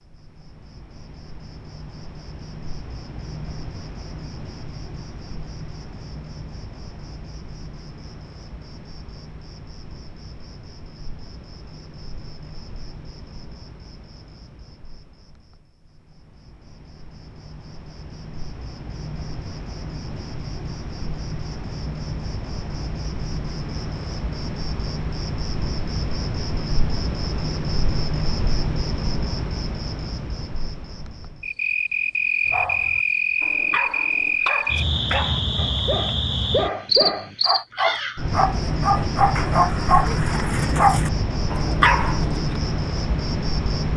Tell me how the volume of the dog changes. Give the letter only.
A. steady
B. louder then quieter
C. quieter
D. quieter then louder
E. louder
E.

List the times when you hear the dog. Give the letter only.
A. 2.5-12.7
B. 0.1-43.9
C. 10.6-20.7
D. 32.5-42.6
D.